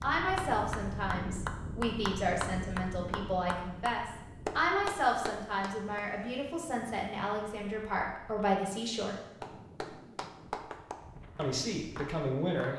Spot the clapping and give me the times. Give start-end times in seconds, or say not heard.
0.0-6.0, 9.2-12.7.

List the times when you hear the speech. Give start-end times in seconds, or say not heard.
0.0-9.2, 11.3-12.7.